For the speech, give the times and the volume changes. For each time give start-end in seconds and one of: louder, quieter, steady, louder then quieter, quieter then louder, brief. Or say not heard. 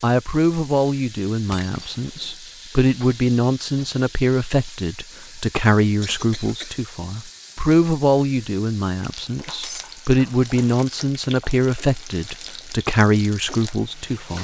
0.0-14.3 steady.